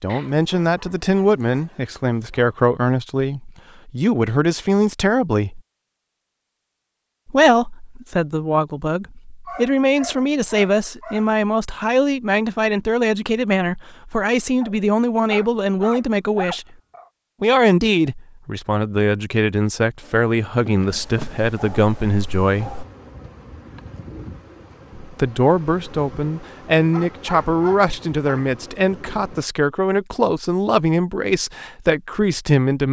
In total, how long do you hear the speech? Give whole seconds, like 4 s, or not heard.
28 s.